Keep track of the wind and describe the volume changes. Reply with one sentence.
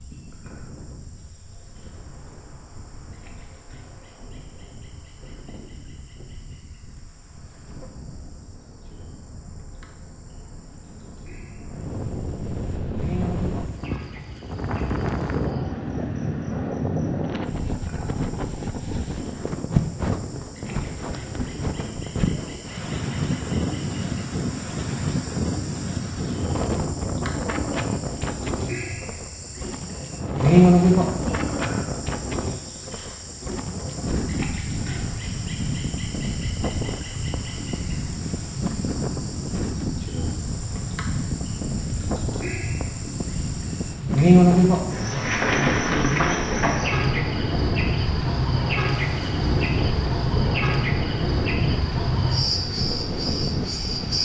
The volume of the wind goes up.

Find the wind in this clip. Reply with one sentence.
You can hear the wind from 0.0 to 54.1 s.